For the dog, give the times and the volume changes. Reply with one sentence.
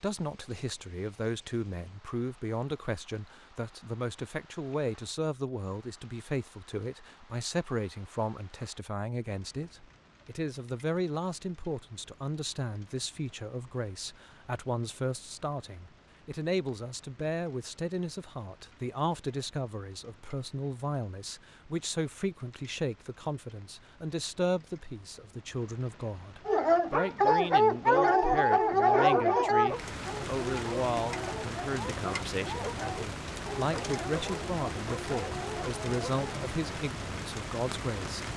You can hear the dog from 26.4 to 36.5 s, getting quieter.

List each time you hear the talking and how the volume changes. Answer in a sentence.
You can hear the talking from 0.0 to 38.3 s, at a steady volume.